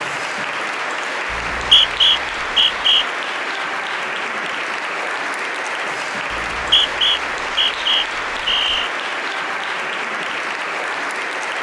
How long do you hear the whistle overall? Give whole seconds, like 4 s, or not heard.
4 s.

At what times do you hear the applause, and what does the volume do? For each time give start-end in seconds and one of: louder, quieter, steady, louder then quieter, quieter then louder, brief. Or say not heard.
0.0-11.5 steady.